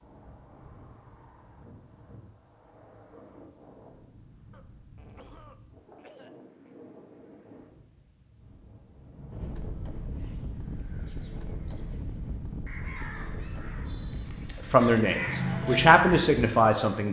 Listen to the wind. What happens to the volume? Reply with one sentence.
The loudness of the wind goes up.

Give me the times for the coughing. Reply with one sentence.
The coughing can be heard from 4.5 to 6.8 s.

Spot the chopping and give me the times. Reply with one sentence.
The chopping can't be heard in this clip.